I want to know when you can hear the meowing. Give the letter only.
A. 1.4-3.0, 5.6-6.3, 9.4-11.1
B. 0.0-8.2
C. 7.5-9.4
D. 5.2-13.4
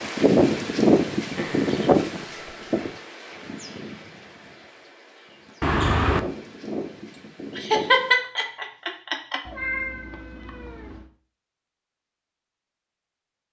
A.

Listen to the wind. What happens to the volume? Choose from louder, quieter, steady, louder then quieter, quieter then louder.
quieter then louder.